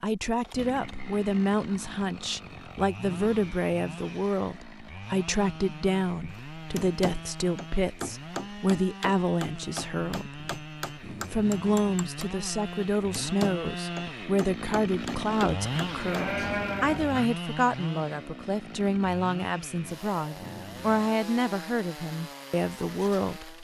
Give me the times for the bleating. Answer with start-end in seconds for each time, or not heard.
15.8-17.3.